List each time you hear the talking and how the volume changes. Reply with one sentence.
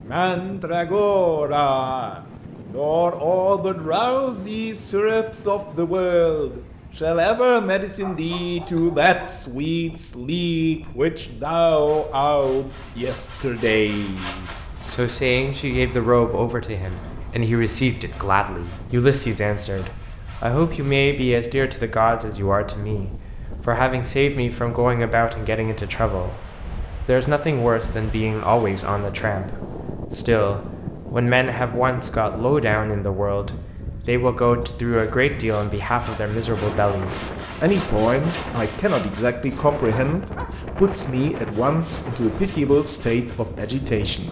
The talking can be heard from 0.0 to 44.2 s, at a steady volume.